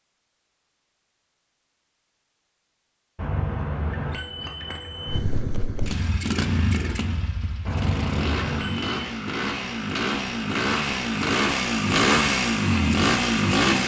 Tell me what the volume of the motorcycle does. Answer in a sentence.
The loudness of the motorcycle goes up.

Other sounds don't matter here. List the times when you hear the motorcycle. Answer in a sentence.
The motorcycle can be heard from 5.0 to 13.8 s.